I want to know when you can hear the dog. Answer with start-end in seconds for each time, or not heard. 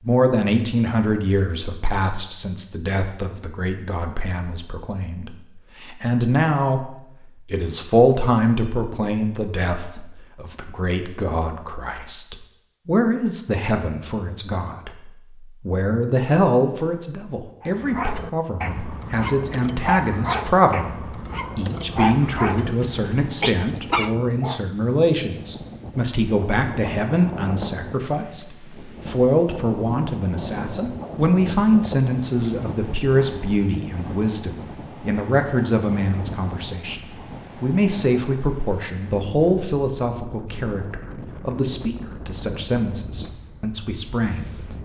17.6-24.6.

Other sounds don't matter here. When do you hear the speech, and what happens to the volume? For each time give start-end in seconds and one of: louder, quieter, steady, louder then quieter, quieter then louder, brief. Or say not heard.
0.0-44.5 steady.